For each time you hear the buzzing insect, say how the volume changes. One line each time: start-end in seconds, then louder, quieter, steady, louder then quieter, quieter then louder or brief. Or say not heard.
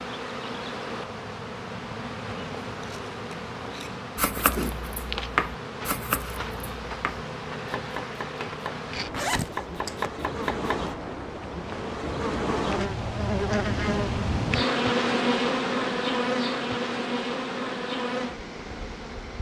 0.0-19.3 louder.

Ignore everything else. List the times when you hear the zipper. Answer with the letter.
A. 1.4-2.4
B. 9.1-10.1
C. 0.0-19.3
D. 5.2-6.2
B.